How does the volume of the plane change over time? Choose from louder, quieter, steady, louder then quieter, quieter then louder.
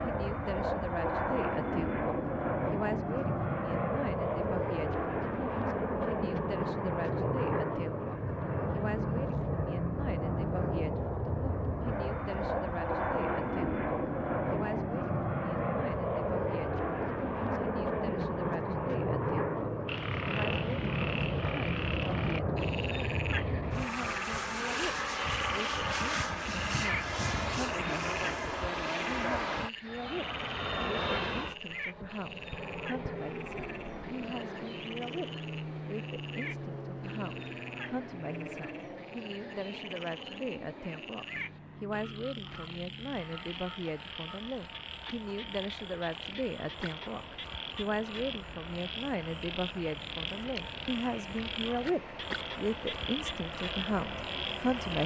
quieter.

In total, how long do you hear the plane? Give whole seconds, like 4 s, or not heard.
55 s.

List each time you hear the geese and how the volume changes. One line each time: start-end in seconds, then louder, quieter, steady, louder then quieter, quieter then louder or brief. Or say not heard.
not heard.